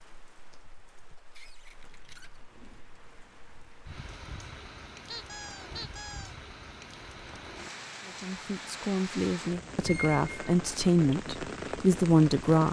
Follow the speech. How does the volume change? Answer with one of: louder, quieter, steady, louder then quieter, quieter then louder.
louder.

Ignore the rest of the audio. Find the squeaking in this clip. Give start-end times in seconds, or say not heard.
1.3-2.4, 5.0-6.3, 9.8-10.8.